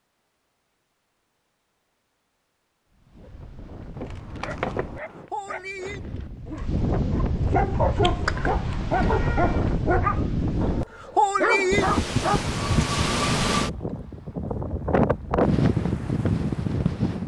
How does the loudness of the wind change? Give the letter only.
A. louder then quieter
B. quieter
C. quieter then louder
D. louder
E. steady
D.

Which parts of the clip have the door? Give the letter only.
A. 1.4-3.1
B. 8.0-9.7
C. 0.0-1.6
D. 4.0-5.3
D.